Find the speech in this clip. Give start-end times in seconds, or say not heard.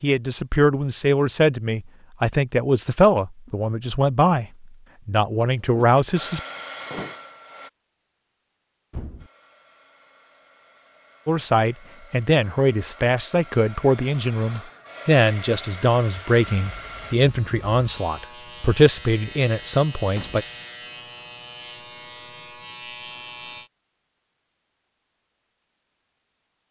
0.0-6.4, 11.2-20.4.